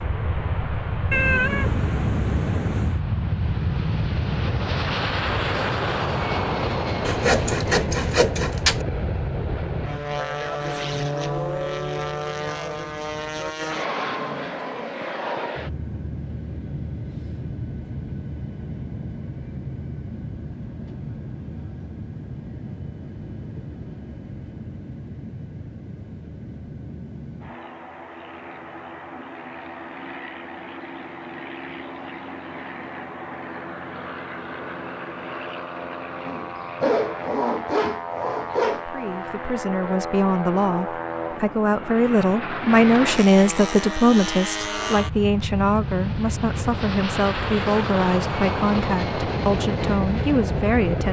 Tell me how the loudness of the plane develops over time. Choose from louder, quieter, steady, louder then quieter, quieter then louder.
quieter then louder.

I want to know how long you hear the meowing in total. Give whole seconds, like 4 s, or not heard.
2 s.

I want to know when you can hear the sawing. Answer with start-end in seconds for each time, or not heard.
7.0-8.8, 36.2-38.9.